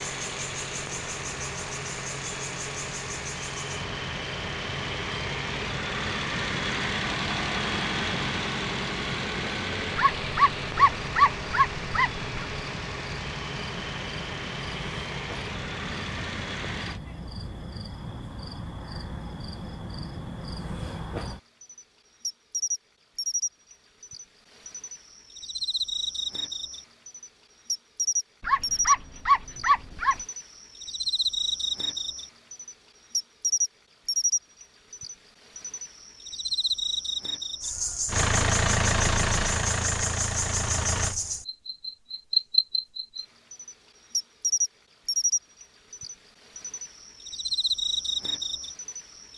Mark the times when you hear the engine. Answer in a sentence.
You can hear the engine from 0.0 to 17.0 s and from 38.0 to 41.1 s.